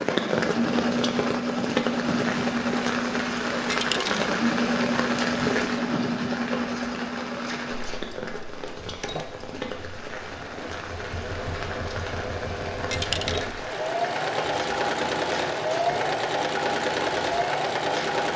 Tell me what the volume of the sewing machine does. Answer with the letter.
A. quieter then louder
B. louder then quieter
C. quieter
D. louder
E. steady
A.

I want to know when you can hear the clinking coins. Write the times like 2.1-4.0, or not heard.
3.7-4.2, 12.9-13.5.